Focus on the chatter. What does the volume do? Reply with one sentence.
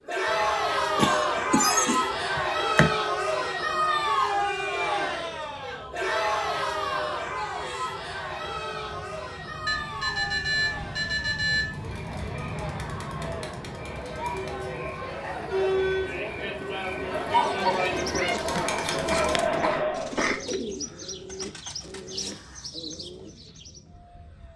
The loudness of the chatter goes down, then up.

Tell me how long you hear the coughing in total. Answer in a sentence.
The coughing can be heard for 4 seconds in total.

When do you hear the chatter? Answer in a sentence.
You can hear the chatter from 0.1 to 20.2 s.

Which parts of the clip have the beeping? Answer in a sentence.
The beeping can be heard from 9.7 to 11.9 s.